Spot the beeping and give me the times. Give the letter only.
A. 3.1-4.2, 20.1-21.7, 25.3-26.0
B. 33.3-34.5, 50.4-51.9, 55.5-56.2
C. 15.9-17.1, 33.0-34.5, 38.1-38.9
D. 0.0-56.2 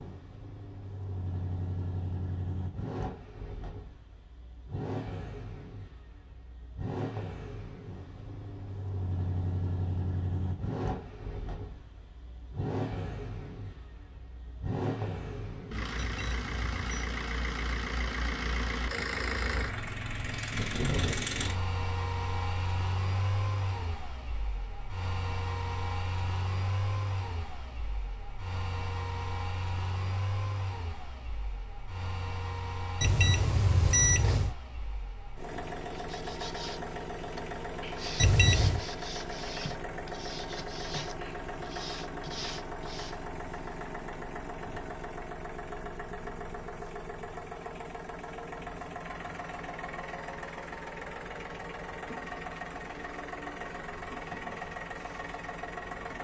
C.